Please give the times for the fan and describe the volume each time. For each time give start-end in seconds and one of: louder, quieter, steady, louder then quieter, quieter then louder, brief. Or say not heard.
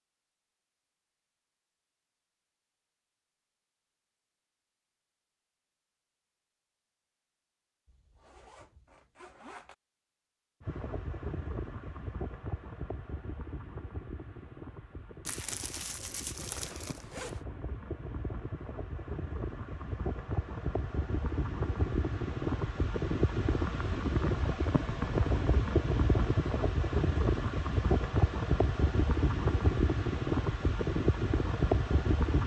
10.6-32.4 louder.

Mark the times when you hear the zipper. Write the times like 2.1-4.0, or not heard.
7.8-9.8, 16.4-17.4.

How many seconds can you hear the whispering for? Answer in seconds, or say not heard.
not heard.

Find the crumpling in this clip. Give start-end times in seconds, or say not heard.
15.2-17.1.